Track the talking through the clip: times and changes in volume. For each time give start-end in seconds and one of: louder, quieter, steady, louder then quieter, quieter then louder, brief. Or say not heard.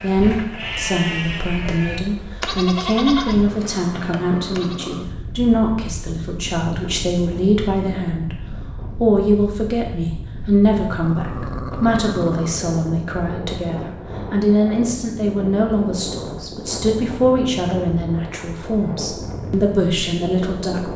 0.0-20.9 steady.